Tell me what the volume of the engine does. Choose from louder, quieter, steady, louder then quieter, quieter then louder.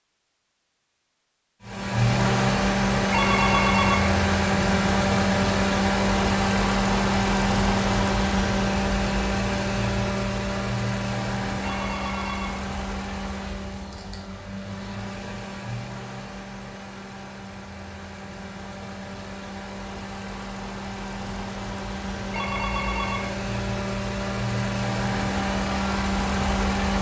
quieter then louder.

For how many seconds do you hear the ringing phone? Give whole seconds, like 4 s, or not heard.
3 s.